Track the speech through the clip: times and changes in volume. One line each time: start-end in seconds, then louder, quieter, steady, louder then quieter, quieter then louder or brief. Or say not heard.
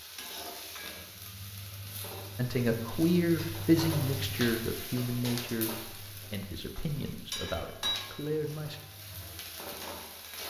2.4-8.8 quieter.